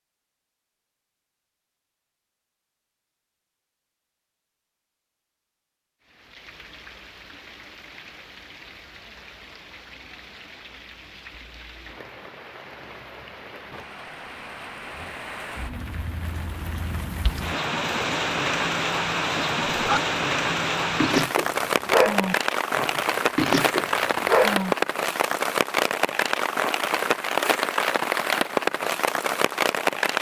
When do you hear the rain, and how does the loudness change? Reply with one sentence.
You can hear the rain from 6.0 to 30.1 s, getting louder.